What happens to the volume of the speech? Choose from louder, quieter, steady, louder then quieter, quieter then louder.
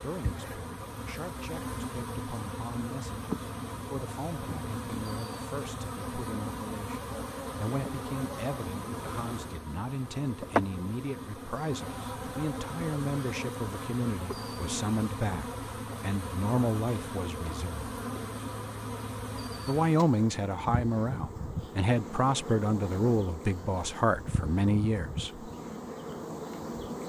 louder.